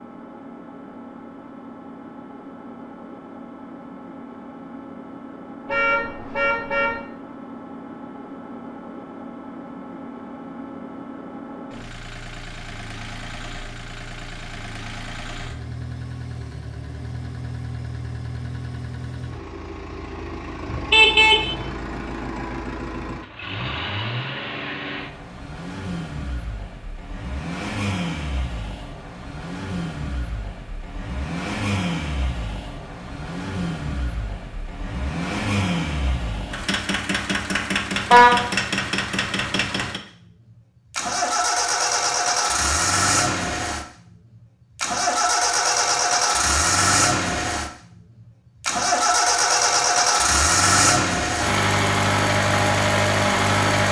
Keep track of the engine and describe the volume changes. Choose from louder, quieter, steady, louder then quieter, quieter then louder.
louder.